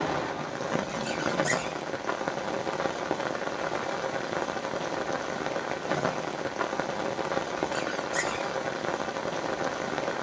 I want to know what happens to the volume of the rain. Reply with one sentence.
The loudness of the rain stays about the same.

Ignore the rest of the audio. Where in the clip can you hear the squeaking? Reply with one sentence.
The squeaking can be heard from 0.8 to 1.8 s and from 7.5 to 8.6 s.